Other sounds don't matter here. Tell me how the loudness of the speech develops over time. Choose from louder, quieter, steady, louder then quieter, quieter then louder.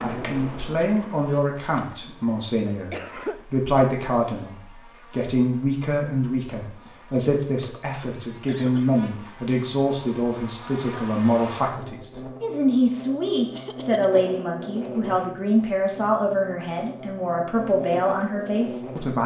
steady.